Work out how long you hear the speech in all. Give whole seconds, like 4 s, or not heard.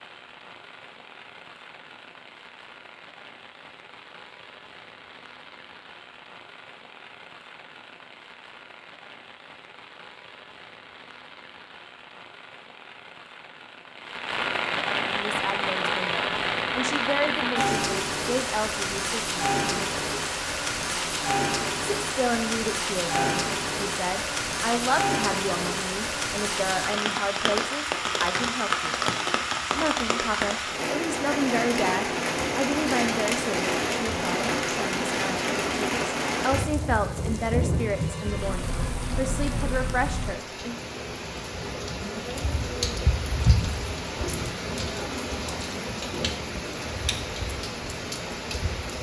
23 s.